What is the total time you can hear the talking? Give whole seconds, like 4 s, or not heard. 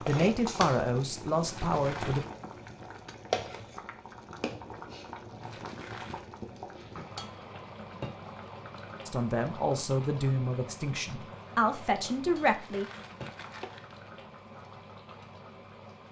6 s.